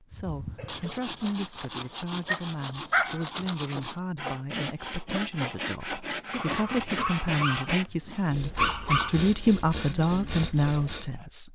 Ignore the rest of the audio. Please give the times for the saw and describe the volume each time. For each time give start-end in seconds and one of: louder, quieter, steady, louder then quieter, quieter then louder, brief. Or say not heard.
0.1-11.1 steady.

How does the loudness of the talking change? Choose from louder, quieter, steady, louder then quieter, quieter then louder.
louder.